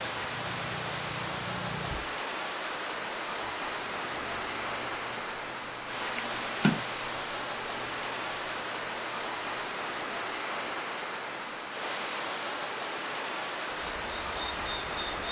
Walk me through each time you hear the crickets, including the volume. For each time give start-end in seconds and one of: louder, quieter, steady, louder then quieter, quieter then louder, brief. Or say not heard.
0.0-15.2 louder then quieter.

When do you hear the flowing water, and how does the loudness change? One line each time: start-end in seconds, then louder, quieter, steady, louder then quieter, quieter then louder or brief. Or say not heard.
0.0-15.2 steady.